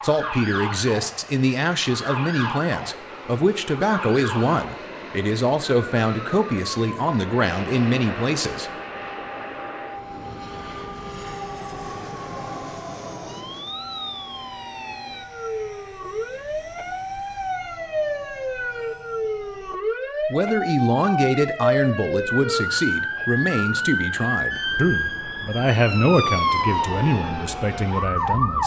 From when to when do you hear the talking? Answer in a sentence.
The talking can be heard from 0.0 to 8.7 s and from 20.3 to 28.6 s.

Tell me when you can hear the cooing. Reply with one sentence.
You can't hear the cooing here.